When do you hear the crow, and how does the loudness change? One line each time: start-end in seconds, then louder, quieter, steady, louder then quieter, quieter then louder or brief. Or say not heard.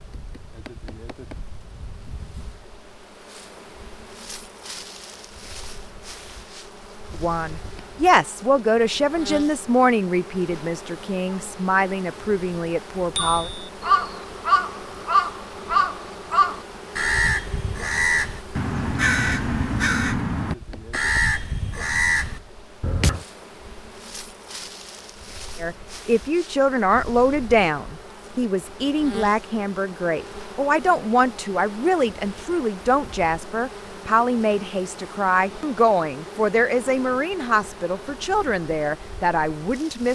13.2-23.2 steady.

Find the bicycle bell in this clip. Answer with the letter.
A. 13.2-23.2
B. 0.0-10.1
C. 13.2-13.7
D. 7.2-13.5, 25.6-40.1
C.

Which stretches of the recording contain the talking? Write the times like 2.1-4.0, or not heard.
7.2-13.5, 25.6-40.1.